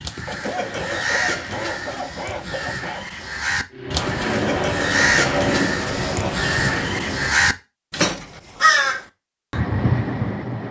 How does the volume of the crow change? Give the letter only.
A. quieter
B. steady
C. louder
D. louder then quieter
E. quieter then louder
C.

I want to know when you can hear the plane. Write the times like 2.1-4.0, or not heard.
3.7-7.5.